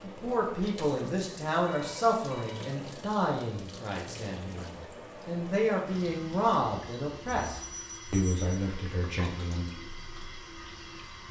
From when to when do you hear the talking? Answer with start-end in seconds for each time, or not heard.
0.0-9.7.